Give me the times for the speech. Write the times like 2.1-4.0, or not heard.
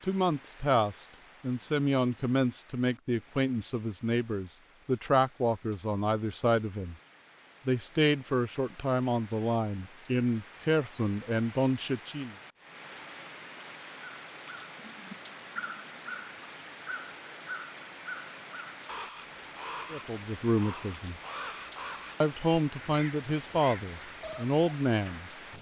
0.0-7.0, 7.7-12.3, 19.9-21.1, 22.2-25.3.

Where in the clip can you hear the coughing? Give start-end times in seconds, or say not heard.
not heard.